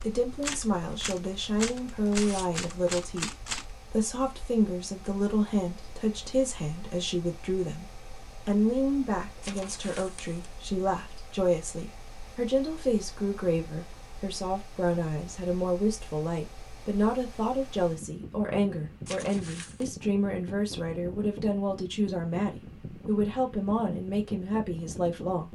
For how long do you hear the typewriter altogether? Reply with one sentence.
The typewriter can be heard for 4 seconds in total.